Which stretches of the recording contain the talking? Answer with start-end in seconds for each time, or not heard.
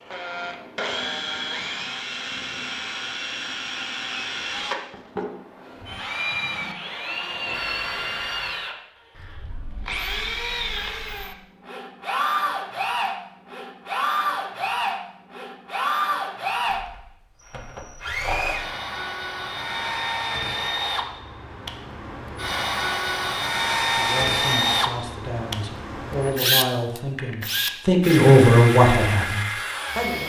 23.9-30.2.